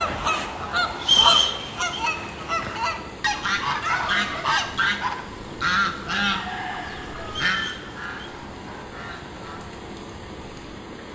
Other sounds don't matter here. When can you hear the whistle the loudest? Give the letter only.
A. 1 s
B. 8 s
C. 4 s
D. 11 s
A.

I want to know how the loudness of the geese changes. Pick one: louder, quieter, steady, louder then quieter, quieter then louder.
quieter.